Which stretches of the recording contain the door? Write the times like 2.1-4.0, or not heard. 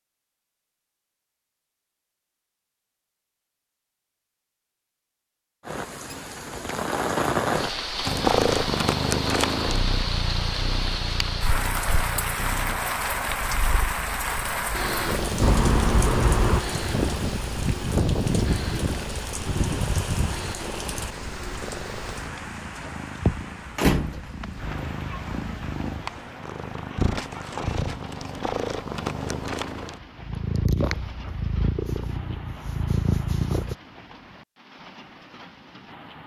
15.4-16.6, 23.8-24.4.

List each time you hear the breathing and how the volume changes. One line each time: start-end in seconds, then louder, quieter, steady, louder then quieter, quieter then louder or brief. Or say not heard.
not heard.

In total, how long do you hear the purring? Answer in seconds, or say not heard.
26 s.